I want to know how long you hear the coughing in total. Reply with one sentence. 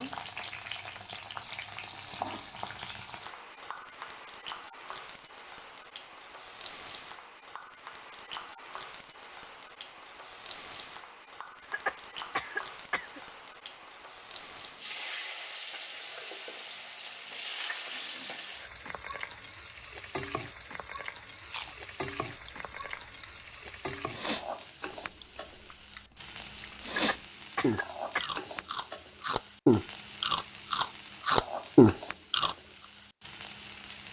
You can hear the coughing for 3 seconds altogether.